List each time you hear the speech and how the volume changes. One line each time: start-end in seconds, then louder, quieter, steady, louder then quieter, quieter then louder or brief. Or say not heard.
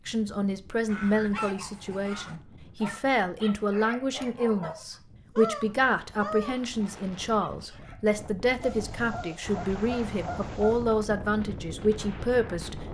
0.1-12.8 steady.